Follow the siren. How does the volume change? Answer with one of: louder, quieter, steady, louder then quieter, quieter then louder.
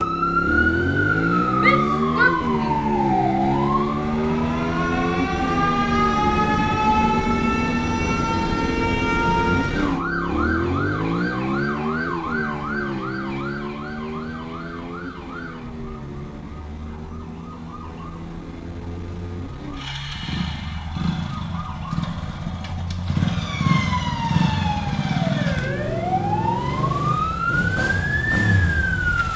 quieter then louder.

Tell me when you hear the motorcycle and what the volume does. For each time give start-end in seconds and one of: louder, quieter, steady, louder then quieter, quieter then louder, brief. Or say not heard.
0.0-29.3 quieter then louder.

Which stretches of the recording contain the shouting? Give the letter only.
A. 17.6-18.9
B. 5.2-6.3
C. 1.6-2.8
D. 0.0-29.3
C.